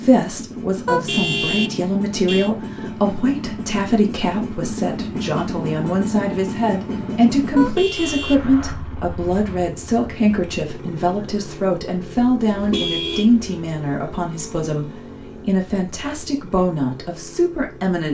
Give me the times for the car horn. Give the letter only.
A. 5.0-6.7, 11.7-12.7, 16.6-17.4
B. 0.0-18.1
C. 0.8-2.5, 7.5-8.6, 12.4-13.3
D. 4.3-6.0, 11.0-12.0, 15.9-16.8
C.